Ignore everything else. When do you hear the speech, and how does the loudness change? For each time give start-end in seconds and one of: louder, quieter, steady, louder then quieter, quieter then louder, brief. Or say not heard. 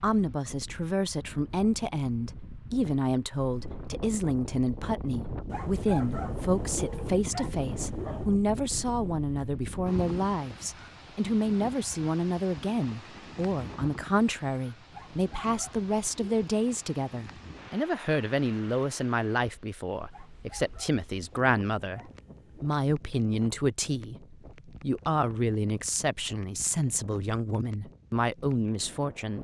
0.0-22.0 steady
22.6-29.3 steady.